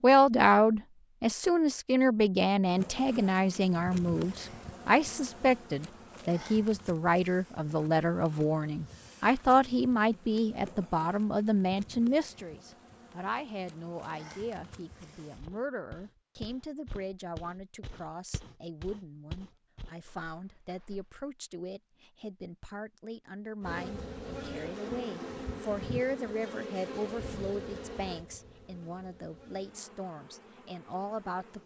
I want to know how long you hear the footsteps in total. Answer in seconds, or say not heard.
6 s.